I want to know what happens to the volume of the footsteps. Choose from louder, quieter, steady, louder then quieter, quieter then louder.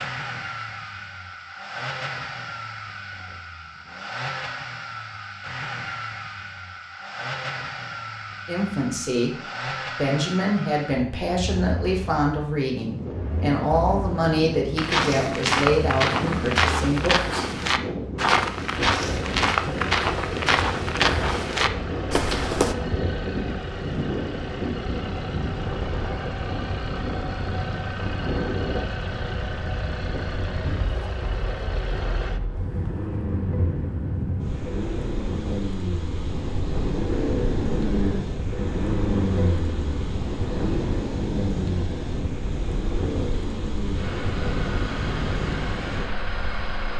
steady.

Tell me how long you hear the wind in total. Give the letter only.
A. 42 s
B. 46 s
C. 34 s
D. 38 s
C.